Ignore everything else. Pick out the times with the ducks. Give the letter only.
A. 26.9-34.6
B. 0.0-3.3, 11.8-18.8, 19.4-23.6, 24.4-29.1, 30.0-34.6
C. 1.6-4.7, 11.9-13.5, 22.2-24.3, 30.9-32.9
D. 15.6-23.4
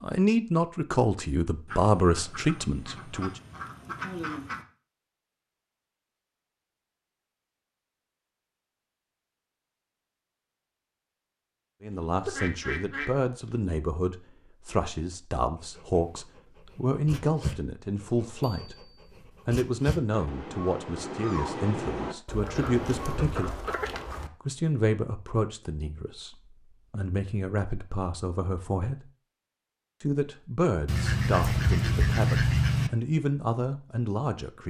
C.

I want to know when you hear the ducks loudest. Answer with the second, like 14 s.
32 s.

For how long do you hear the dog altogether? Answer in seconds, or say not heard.
8 s.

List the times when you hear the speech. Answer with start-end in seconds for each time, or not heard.
0.0-3.3, 11.8-18.8, 19.4-23.6, 24.4-29.1, 30.0-34.6.